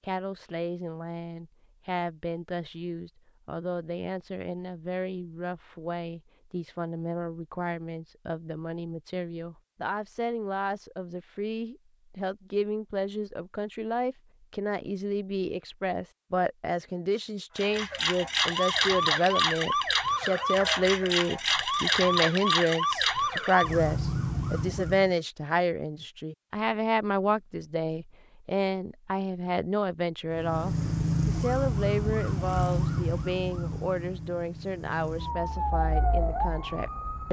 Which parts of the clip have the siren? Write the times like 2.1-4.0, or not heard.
17.6-25.1, 30.3-37.2.